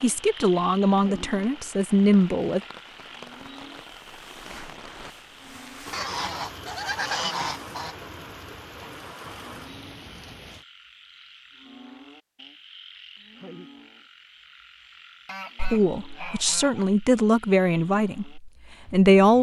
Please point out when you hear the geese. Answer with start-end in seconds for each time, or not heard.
5.9-8.0, 15.2-16.9.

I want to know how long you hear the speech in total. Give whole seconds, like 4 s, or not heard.
6 s.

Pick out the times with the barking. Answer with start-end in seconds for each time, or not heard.
not heard.